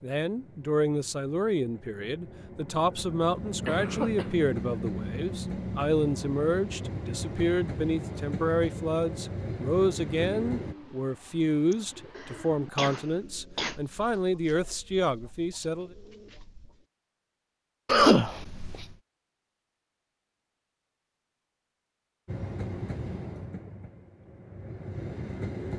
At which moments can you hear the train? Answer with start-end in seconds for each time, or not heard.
0.0-10.8, 22.2-25.7.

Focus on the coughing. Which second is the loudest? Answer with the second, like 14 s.
18 s.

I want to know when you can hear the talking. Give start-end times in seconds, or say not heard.
0.0-15.9.